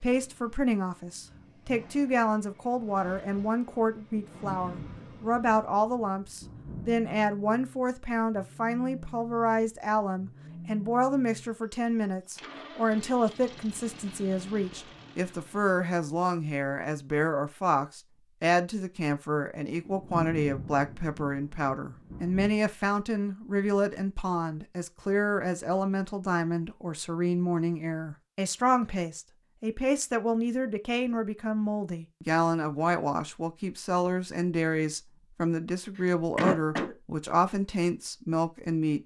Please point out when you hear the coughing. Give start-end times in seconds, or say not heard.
36.0-37.0.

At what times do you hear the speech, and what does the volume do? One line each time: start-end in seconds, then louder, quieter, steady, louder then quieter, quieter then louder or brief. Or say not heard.
0.0-39.0 steady.